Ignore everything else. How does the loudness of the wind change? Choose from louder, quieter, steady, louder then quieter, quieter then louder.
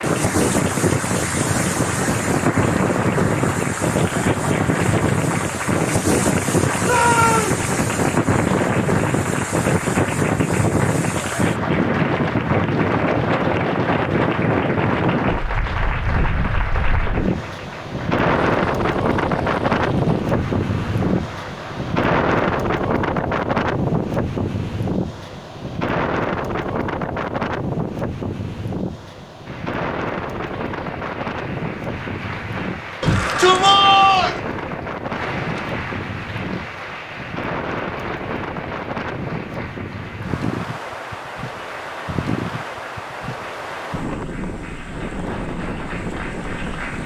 quieter.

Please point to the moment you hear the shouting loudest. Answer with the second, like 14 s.
34 s.